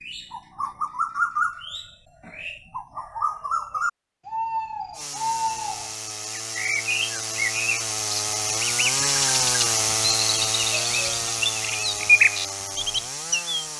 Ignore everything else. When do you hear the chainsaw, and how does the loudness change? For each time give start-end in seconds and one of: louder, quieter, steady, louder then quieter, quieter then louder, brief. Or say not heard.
4.9-13.7 louder then quieter.